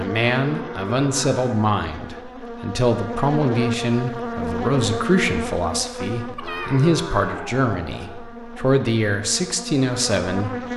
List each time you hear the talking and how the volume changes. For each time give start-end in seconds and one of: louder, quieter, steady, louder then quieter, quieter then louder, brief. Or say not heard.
0.0-10.7 steady.